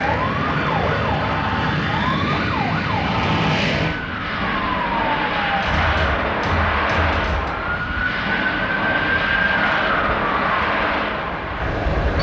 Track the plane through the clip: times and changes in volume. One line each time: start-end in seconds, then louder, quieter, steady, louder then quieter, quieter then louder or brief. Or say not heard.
0.0-12.1 steady.